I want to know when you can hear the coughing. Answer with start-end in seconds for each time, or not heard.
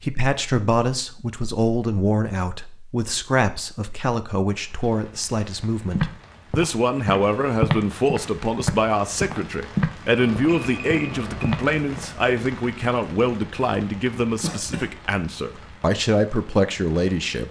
14.4-14.9.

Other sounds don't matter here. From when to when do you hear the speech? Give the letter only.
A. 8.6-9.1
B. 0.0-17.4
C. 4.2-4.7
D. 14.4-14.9
B.